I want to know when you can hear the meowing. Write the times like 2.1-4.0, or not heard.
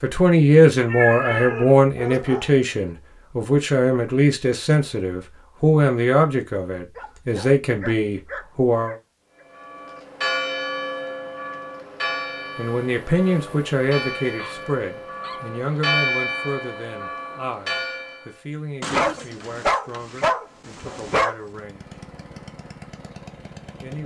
0.9-1.8.